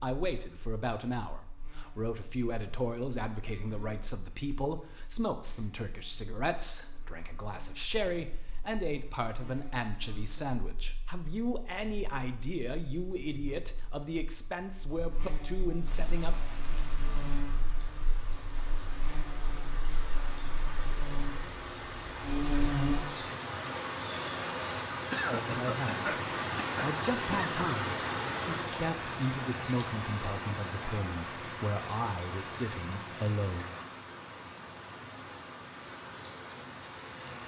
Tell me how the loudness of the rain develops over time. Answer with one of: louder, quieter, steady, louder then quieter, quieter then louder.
louder then quieter.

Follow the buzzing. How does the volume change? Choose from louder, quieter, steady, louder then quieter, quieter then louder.
louder.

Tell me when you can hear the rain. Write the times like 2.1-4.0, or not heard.
15.8-37.4.